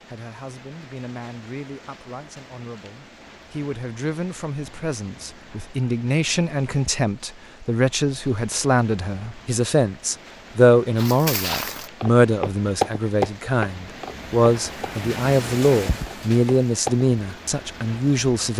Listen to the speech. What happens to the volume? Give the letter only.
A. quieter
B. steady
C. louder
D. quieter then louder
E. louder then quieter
C.